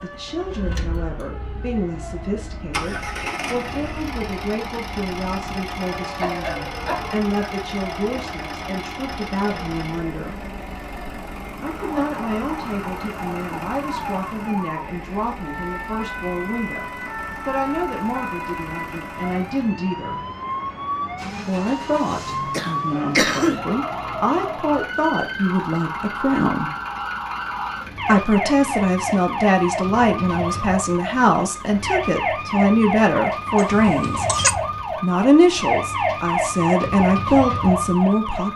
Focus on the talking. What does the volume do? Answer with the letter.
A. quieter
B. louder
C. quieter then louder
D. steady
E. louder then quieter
B.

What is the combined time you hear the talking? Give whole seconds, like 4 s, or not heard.
34 s.